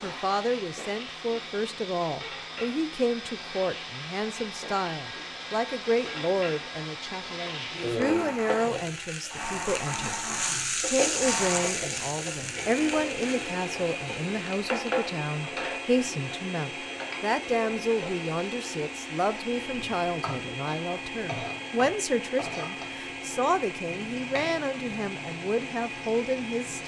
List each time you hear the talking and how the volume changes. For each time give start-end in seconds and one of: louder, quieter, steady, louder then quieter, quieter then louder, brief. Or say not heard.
0.0-26.8 steady.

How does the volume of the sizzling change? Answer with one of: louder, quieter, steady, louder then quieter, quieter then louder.
louder then quieter.